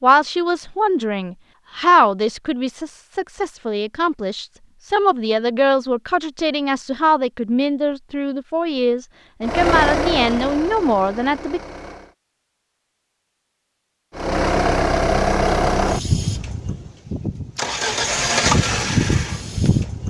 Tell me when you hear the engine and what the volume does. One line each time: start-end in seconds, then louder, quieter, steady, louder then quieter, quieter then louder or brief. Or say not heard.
9.4-12.2 brief
14.2-20.0 quieter then louder.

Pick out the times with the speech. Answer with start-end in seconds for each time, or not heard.
0.0-11.6.